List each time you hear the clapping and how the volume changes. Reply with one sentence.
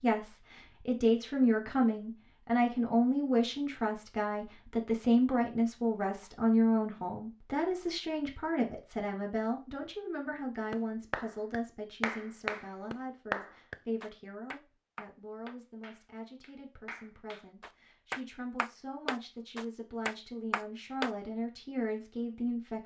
The clapping can be heard from 10.7 to 21.1 s, getting quieter then louder.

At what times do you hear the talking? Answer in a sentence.
You can hear the talking from 0.0 to 22.8 s.